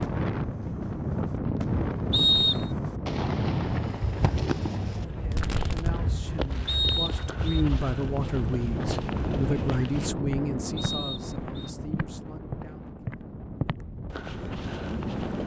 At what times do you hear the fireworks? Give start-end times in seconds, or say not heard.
0.0-6.7.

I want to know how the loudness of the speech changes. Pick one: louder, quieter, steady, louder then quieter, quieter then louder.
louder then quieter.